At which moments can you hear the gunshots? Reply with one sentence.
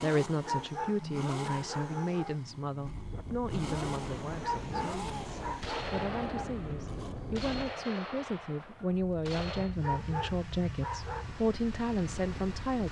The gunshots can be heard from 5.6 to 9.8 s.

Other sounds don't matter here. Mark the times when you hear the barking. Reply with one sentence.
The barking can be heard from 0.4 to 2.4 s, from 4.4 to 6.5 s and from 9.8 to 11.2 s.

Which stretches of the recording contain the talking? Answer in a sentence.
You can hear the talking from 0.0 to 12.8 s.